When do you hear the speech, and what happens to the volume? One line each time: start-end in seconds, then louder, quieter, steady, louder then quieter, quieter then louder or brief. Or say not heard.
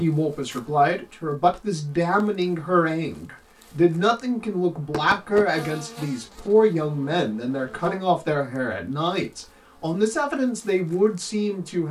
0.0-11.8 steady.